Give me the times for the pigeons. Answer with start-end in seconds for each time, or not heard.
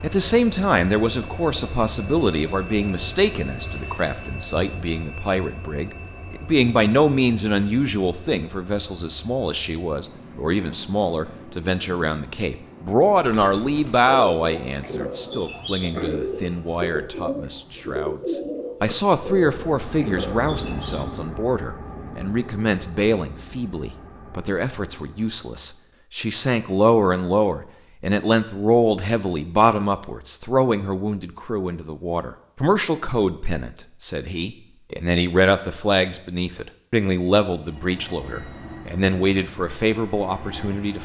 13.1-21.1.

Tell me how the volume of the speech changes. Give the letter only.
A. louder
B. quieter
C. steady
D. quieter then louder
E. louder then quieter
C.